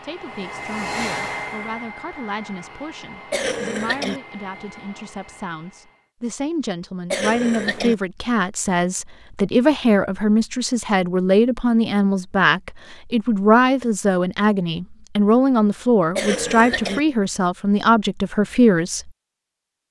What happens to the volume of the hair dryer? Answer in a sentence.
The loudness of the hair dryer goes down.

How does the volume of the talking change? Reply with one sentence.
The loudness of the talking goes up.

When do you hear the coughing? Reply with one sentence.
You can hear the coughing from 3.3 to 4.2 s, from 7.1 to 8.0 s and from 16.1 to 17.0 s.